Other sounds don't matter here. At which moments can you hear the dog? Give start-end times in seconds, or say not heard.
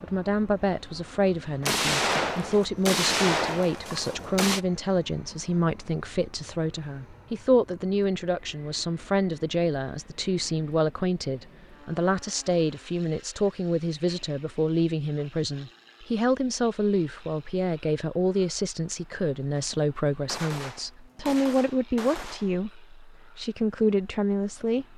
not heard.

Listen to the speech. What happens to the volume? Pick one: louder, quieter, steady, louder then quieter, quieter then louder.
steady.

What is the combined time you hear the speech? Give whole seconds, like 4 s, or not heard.
25 s.